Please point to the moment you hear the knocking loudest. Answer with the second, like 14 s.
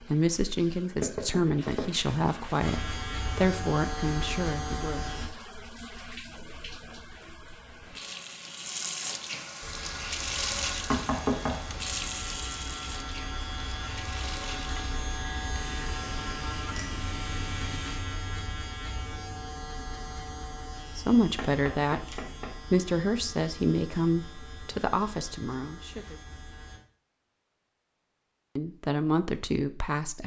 11 s.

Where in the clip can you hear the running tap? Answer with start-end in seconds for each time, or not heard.
0.0-18.1.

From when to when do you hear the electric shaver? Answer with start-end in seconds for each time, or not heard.
2.6-5.3, 9.6-26.8.